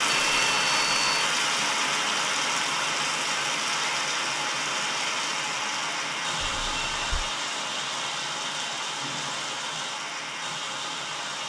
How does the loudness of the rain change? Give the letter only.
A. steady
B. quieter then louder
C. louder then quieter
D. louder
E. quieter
E.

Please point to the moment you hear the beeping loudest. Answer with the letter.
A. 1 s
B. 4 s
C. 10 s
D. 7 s
A.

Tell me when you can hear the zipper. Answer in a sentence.
You can't hear the zipper here.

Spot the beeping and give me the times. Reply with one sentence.
You can hear the beeping from 0.1 to 1.1 s and from 6.4 to 7.3 s.